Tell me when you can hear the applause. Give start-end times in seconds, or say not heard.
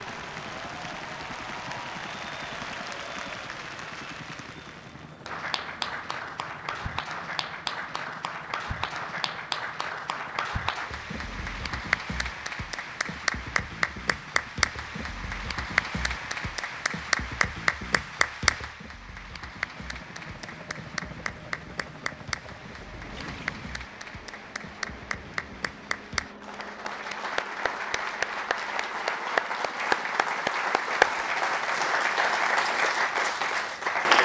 0.0-34.2.